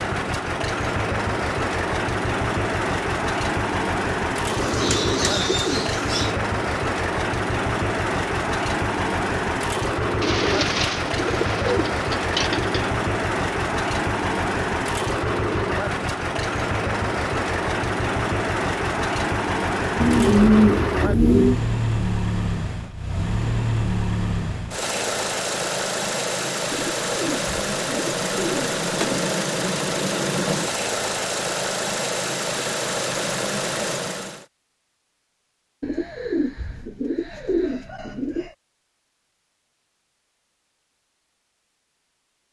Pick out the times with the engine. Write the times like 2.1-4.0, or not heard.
0.0-34.5.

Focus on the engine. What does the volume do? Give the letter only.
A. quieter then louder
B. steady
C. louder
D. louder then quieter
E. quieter
B.